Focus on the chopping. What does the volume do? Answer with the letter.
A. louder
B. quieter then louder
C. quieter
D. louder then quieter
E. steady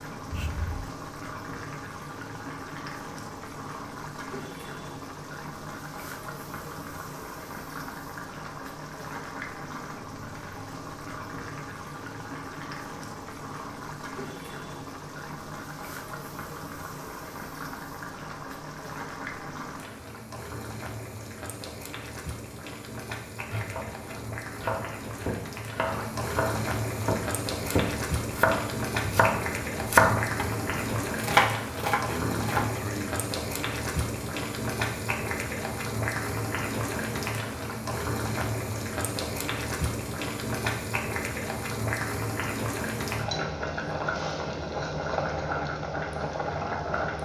A.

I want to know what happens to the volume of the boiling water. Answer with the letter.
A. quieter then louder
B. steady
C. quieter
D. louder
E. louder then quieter
D.